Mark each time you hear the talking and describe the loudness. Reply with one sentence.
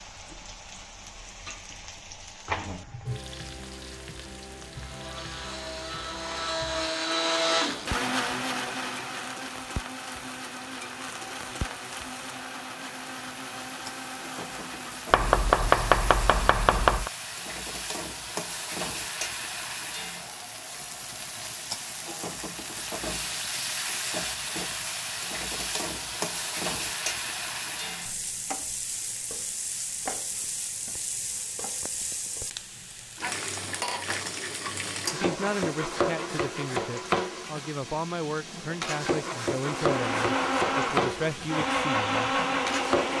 The talking can be heard from 35.1 to 42.4 s, at a steady volume.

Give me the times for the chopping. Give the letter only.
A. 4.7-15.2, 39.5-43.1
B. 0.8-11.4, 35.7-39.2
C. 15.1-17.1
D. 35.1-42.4
C.